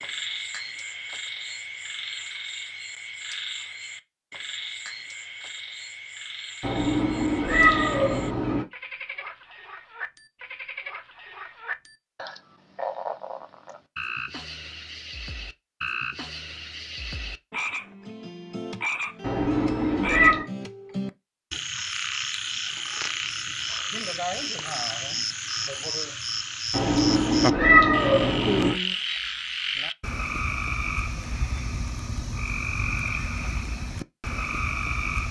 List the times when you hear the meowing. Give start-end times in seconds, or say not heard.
6.6-8.7, 19.2-20.4, 26.7-28.8.